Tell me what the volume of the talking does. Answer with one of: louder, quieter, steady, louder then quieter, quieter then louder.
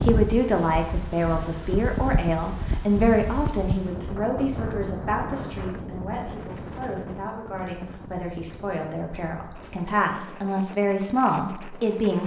quieter then louder.